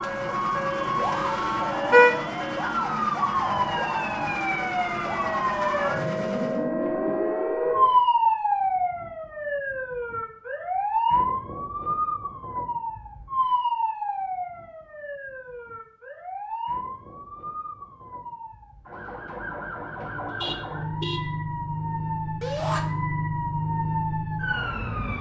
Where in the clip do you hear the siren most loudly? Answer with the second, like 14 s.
8 s.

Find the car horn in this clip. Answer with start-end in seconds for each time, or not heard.
1.0-2.2, 20.3-21.2.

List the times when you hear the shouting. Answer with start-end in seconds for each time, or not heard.
22.4-22.8.